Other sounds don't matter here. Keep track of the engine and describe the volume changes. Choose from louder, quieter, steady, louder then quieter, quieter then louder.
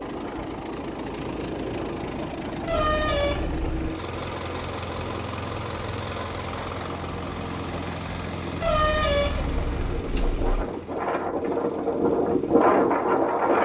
quieter.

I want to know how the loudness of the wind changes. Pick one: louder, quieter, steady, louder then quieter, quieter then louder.
louder.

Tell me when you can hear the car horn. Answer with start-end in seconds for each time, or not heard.
2.6-3.9, 8.6-10.7.